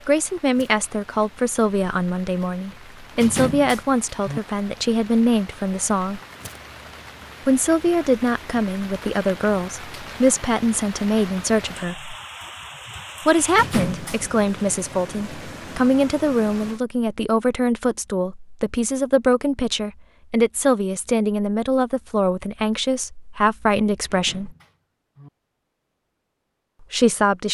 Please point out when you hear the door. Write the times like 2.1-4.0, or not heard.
3.1-4.4, 13.5-14.2, 24.1-25.3.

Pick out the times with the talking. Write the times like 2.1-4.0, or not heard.
0.1-6.2, 7.5-12.2, 13.2-24.6, 26.9-27.4.